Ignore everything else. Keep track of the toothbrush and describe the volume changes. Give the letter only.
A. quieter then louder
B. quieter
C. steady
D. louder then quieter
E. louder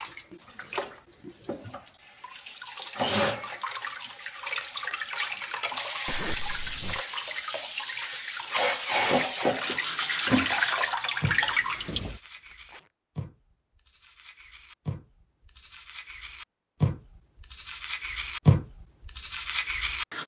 A.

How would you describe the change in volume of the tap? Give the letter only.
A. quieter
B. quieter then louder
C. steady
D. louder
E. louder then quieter
D.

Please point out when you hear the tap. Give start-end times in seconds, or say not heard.
0.0-12.2.